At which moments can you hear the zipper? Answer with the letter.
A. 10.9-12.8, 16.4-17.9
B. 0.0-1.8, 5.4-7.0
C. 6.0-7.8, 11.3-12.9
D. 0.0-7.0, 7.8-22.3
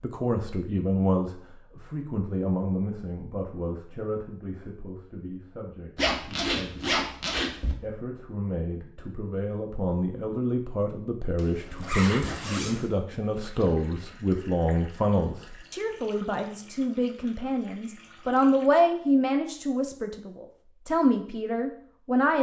C.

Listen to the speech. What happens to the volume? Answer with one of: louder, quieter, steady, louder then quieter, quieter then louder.
quieter then louder.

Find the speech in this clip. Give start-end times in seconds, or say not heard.
0.0-7.0, 7.8-22.3.